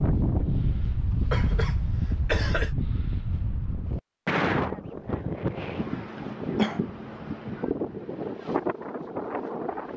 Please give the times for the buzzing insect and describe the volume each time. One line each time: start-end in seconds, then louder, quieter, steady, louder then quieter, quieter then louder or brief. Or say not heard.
not heard.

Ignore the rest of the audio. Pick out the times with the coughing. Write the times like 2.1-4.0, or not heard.
1.3-2.7, 6.2-6.8.